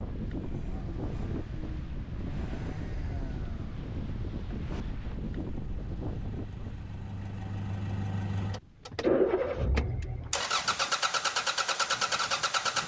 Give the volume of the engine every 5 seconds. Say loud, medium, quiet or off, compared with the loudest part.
quiet, loud, loud.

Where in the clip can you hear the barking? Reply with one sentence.
You can't hear the barking here.